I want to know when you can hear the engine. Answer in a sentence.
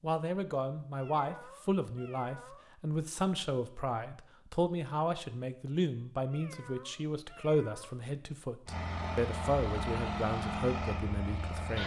The engine can be heard from 8.7 to 11.8 s.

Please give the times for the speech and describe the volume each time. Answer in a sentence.
You can hear the speech from 0.0 to 11.8 s, at a steady volume.